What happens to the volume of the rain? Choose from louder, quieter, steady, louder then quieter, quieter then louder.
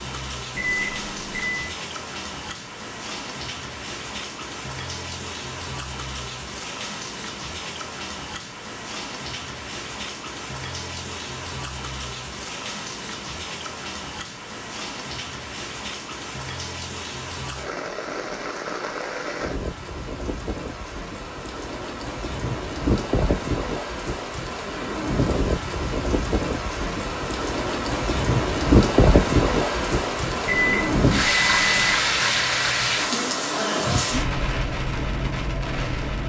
louder.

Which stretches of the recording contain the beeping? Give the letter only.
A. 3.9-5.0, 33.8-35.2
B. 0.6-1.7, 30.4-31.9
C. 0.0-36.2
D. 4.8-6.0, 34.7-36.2
B.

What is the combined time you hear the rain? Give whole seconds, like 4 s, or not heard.
36 s.